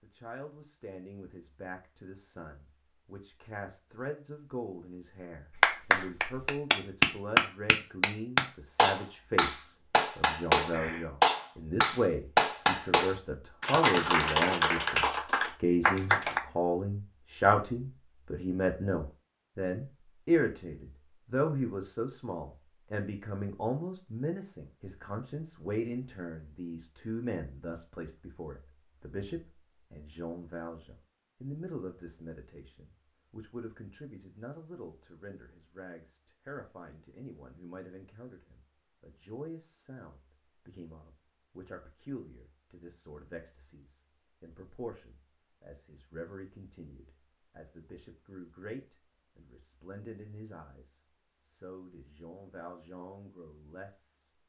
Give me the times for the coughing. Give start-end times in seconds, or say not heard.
10.7-11.1.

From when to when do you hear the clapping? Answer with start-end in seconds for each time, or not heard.
5.5-16.4.